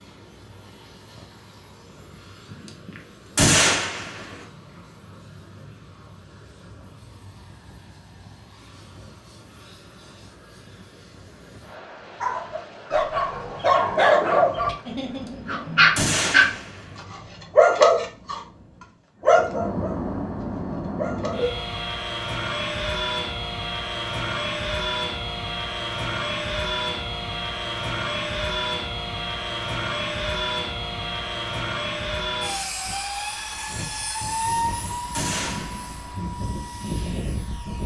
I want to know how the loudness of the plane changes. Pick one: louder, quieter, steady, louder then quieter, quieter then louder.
louder.